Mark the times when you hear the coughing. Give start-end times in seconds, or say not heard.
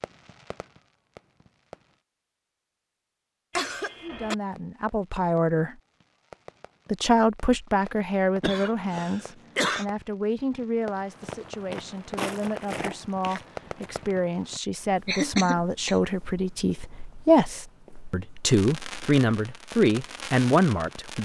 3.5-4.3, 8.4-9.8, 15.1-15.9.